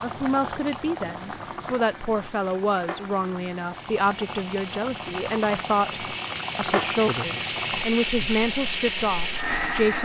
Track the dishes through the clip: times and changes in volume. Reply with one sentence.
You can't hear the dishes here.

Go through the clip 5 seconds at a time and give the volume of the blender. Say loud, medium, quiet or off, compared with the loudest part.
quiet, loud.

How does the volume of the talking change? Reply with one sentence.
The loudness of the talking stays about the same.